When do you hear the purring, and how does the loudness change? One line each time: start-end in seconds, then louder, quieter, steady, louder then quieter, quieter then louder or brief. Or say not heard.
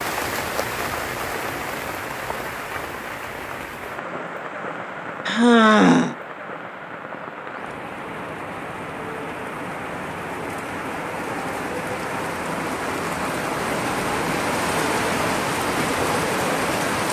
not heard.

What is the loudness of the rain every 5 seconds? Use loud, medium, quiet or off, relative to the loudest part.
medium, medium, loud, loud.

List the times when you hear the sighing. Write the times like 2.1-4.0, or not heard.
5.2-6.2.